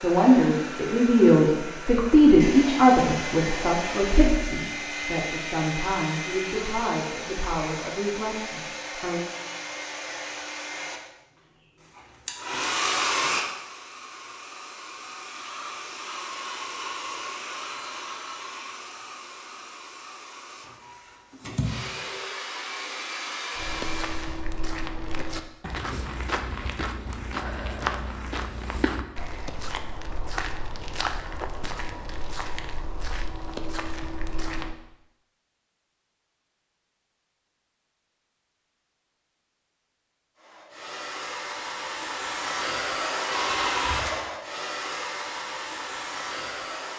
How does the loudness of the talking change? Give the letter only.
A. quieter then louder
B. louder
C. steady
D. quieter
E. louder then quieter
D.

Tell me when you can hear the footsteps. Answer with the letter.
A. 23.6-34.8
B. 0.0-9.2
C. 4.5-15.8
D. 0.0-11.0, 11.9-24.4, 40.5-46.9
A.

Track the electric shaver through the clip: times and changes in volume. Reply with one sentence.
You can't hear the electric shaver here.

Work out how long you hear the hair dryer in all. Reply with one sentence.
You can hear the hair dryer for 30 seconds altogether.